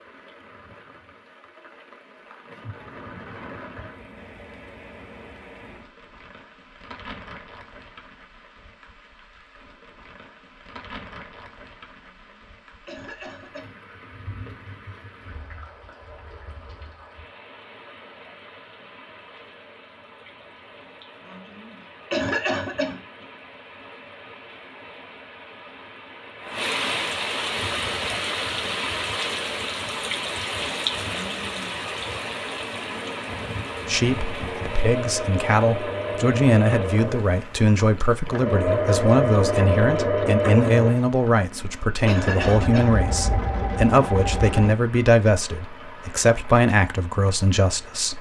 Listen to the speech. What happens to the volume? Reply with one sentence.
The loudness of the speech stays about the same.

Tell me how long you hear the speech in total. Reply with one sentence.
The speech can be heard for 14 seconds in total.